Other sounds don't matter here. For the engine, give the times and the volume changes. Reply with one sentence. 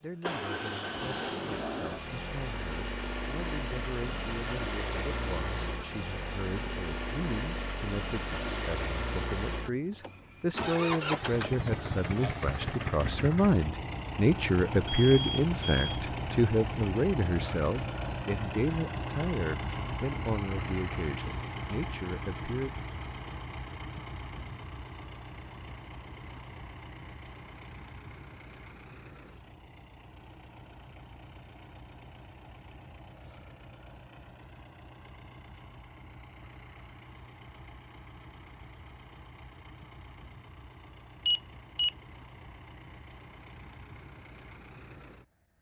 You can hear the engine from 0.0 to 45.5 s, getting quieter.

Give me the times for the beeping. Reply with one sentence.
The beeping can be heard from 14.8 to 16.0 s and from 41.2 to 41.9 s.